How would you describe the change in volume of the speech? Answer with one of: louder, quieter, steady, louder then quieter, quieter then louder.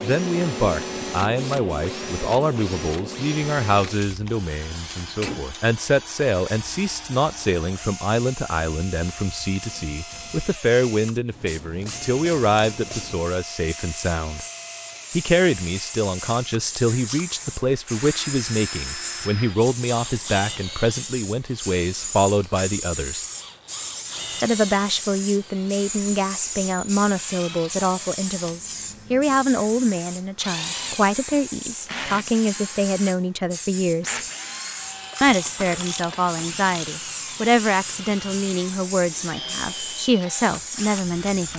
steady.